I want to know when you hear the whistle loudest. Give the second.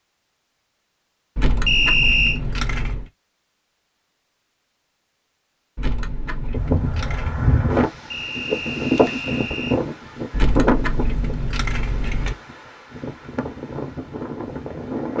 2 s.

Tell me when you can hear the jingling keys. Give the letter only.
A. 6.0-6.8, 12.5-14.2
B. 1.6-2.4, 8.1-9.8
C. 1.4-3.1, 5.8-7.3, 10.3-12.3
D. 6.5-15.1
C.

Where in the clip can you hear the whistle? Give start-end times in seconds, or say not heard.
1.6-2.4, 8.1-9.8.